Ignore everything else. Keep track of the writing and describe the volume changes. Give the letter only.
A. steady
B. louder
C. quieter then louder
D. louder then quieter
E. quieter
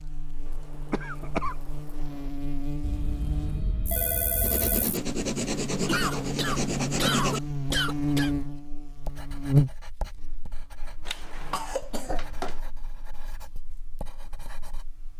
E.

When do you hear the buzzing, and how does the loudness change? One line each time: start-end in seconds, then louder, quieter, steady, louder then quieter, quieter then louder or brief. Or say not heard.
0.0-15.1 louder then quieter.